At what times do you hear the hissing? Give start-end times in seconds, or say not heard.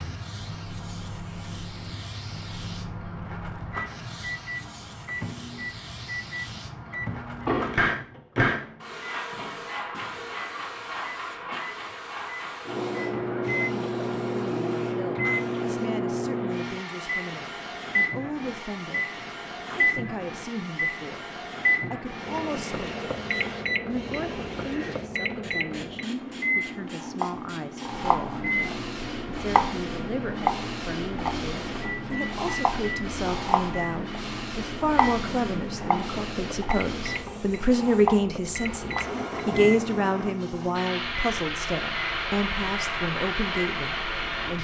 0.0-44.5.